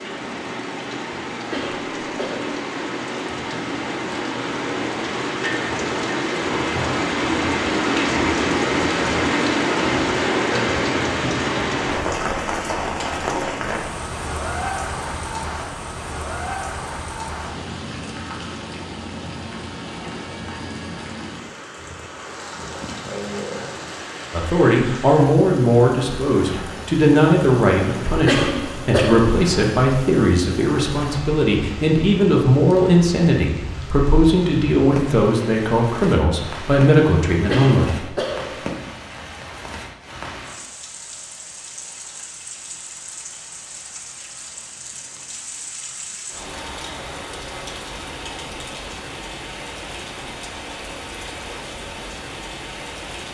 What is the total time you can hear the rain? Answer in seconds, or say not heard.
53 s.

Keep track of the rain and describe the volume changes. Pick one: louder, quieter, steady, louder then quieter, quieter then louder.
quieter.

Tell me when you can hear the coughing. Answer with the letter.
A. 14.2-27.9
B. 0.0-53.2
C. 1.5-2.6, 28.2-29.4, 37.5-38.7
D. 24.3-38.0
C.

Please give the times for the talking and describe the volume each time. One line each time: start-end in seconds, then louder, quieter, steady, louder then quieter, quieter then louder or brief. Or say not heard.
24.3-38.0 steady.